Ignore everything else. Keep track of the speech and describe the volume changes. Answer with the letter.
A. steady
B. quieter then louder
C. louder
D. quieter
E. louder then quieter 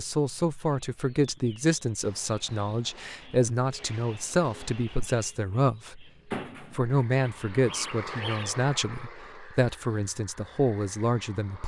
A.